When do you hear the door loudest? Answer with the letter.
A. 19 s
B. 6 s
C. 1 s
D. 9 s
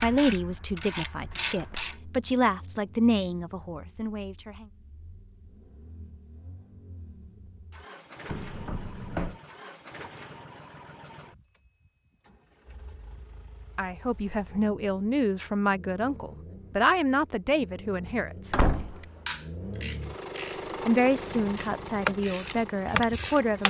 A.